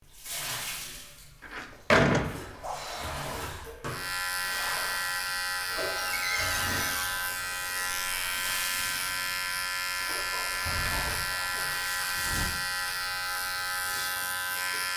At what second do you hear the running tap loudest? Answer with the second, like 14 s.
2 s.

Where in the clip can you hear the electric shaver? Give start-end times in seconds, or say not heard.
3.9-14.9.